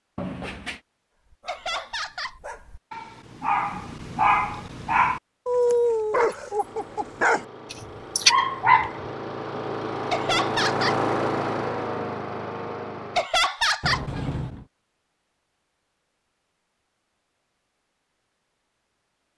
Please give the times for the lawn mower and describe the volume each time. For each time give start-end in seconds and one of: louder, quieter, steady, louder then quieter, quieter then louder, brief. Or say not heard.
6.5-13.3 louder then quieter.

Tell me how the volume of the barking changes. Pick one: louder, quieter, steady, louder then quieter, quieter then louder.
louder.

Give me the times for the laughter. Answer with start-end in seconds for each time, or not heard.
1.4-2.4, 10.1-11.0, 13.2-14.1.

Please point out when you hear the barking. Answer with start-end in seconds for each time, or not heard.
1.2-9.1.